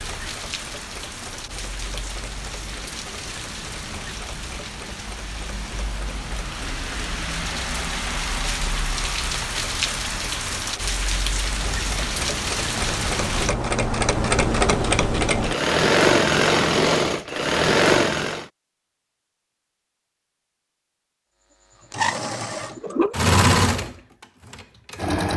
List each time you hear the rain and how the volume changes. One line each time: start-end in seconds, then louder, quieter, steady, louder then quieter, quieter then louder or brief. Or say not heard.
0.0-13.6 louder.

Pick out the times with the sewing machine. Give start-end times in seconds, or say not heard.
0.0-18.4, 21.8-25.3.